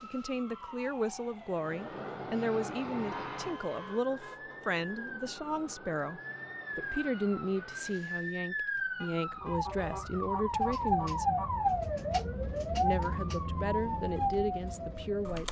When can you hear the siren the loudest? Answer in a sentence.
The loudest moment of the siren is at 11 seconds.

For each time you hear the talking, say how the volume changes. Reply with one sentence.
You can hear the talking from 0.0 to 11.4 s, at a steady volume; and briefly from 12.8 to 15.4 s.